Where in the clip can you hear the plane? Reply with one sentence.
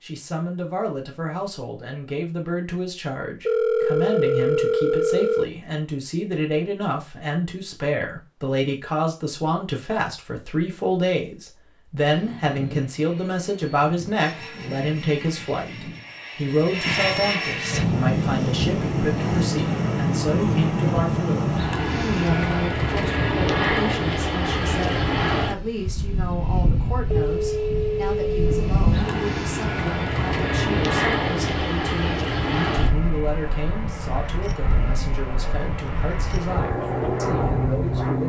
The plane can be heard from 12.1 to 38.2 s.